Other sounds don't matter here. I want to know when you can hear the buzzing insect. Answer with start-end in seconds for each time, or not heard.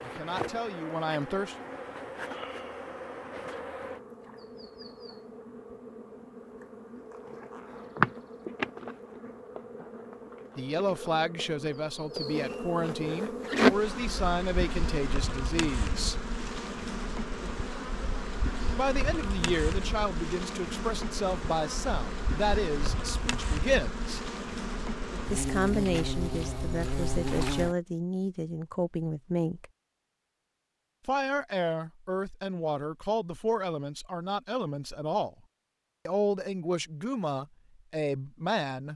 0.0-27.8.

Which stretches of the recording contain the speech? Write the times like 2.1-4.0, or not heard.
0.0-1.6, 10.6-16.2, 18.8-24.2, 25.3-29.6, 31.1-35.3, 36.0-38.9.